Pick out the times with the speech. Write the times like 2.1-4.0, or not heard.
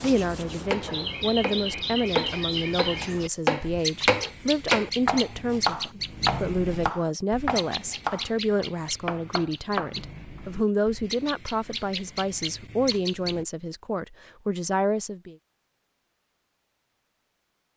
0.0-15.3.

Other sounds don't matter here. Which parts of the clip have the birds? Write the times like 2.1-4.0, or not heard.
0.0-13.4.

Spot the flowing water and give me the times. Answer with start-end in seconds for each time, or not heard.
not heard.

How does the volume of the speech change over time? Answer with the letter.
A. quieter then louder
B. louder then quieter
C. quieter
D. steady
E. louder
D.